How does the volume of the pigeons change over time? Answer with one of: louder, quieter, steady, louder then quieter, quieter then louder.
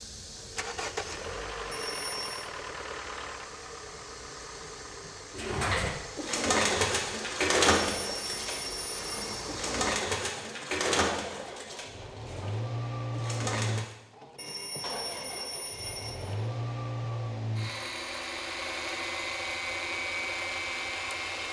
quieter.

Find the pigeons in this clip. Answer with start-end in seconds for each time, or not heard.
5.3-13.9.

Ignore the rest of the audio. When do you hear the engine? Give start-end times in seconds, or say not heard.
0.0-21.4.